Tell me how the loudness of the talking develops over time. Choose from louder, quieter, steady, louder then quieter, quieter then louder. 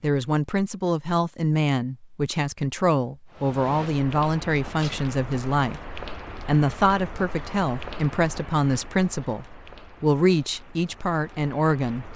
steady.